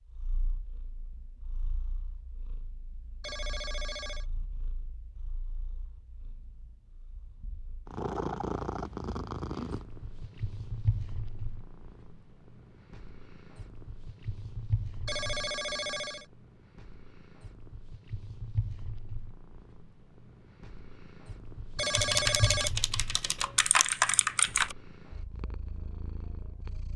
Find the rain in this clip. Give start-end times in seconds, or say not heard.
not heard.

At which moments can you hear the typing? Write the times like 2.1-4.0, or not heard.
21.9-24.8.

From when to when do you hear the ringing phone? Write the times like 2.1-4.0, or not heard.
3.2-4.2, 15.1-16.2, 21.8-22.7.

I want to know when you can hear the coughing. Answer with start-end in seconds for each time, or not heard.
not heard.